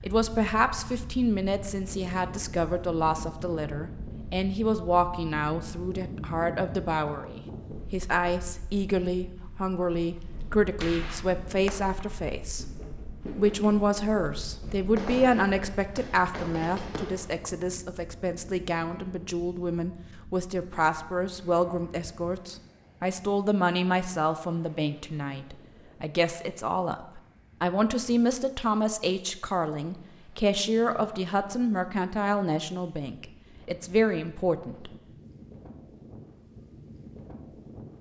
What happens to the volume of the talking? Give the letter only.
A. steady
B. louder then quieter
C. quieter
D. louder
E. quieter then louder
A.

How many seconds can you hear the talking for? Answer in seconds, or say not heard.
34 s.